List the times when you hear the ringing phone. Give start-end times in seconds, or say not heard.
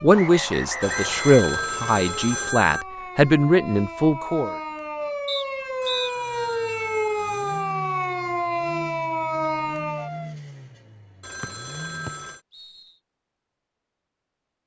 0.8-2.9, 5.8-7.8, 11.2-12.4.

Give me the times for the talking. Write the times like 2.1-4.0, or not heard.
0.0-4.5.